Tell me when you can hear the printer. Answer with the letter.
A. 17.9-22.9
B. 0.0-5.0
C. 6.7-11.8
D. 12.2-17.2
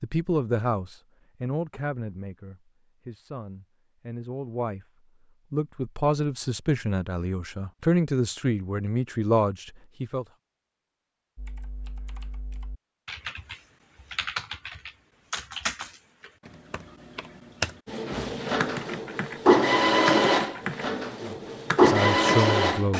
A.